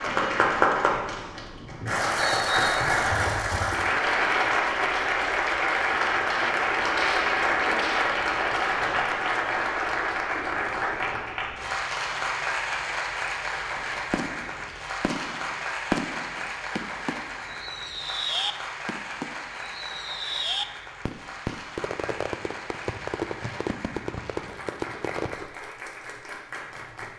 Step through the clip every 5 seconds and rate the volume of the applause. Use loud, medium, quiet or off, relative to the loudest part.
loud, loud, medium, medium, quiet, quiet.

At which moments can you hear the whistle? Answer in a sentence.
You can hear the whistle from 2.1 to 3.3 s.